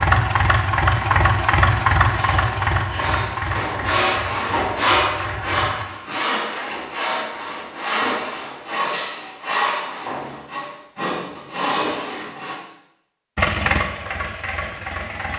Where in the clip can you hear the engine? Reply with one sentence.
The engine can be heard from 0.0 to 5.8 s and from 13.3 to 15.3 s.